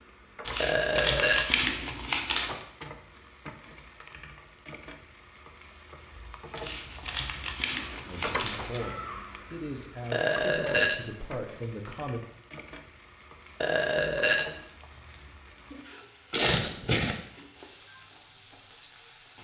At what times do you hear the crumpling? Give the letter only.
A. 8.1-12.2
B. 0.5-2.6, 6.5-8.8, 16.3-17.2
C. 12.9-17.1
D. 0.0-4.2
B.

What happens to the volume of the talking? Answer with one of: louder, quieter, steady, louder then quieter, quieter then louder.
steady.